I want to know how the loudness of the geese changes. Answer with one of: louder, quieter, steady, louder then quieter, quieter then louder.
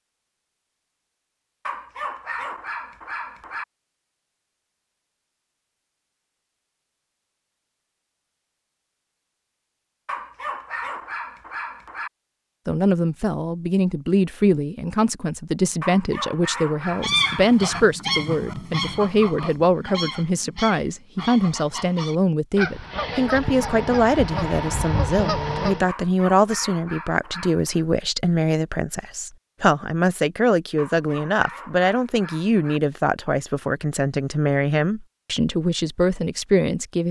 quieter then louder.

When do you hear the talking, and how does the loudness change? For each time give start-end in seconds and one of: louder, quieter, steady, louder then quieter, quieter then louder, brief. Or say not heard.
12.7-37.0 steady.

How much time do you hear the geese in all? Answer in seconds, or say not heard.
9 s.